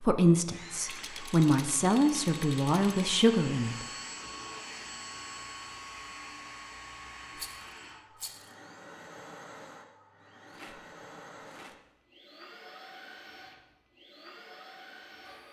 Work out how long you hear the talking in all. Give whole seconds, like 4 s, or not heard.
4 s.